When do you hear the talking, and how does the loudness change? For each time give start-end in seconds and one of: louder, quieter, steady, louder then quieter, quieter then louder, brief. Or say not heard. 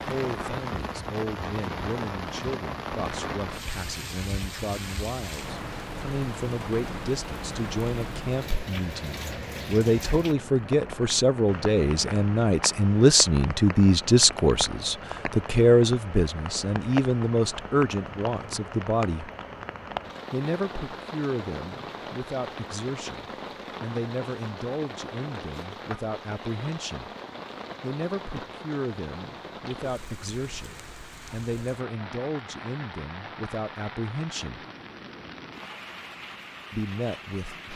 0.0-19.3 louder
20.3-27.1 steady
27.8-34.6 steady
36.7-37.7 brief.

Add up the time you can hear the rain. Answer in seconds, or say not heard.
38 s.